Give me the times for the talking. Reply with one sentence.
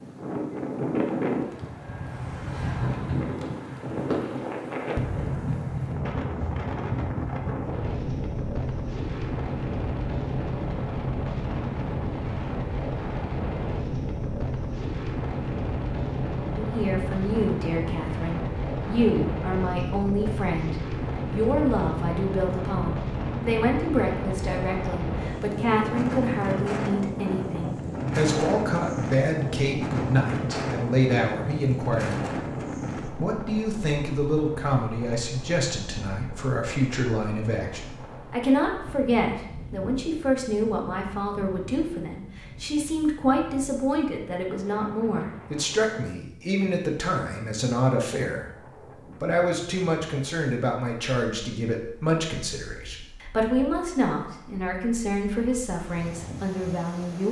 The talking can be heard from 16.5 to 32.2 s, from 33.0 to 48.5 s and from 49.2 to 57.2 s.